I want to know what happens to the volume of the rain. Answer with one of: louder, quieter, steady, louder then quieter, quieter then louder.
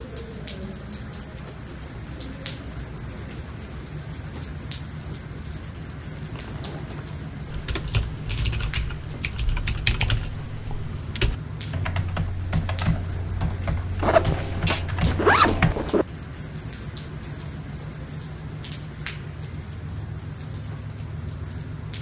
steady.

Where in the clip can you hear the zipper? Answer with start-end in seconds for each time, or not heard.
6.2-7.2, 14.0-16.1.